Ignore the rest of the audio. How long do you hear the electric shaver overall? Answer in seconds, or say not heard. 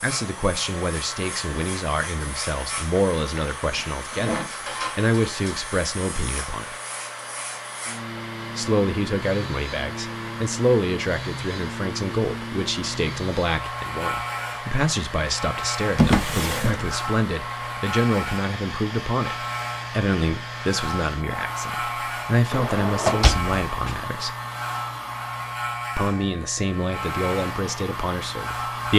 29 s.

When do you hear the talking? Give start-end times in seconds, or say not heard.
0.0-6.8, 8.6-24.4, 25.9-28.9.